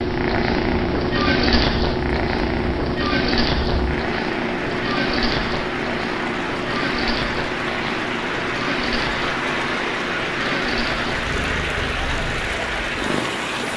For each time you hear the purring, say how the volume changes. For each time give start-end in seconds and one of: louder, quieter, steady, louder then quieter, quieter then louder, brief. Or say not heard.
0.0-13.7 quieter.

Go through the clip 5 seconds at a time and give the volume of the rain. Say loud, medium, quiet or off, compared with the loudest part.
medium, loud, loud.